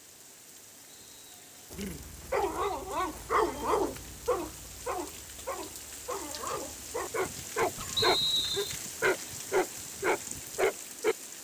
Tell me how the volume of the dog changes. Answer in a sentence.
The loudness of the dog goes down, then up.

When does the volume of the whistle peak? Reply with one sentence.
The volume of the whistle peaks at 8 seconds.